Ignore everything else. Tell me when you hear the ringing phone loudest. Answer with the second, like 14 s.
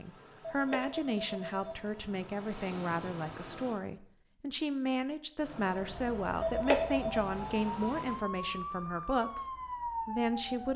7 s.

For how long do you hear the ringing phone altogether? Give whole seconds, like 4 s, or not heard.
2 s.